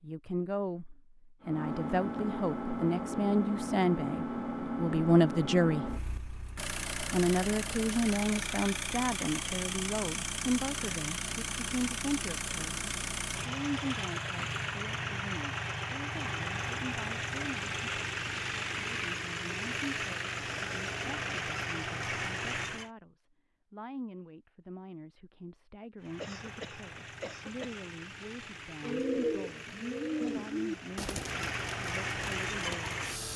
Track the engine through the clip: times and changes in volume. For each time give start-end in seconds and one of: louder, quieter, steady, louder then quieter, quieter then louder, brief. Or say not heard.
1.4-22.9 steady
25.9-33.3 louder.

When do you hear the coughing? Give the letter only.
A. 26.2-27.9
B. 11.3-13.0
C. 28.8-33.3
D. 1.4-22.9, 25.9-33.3
A.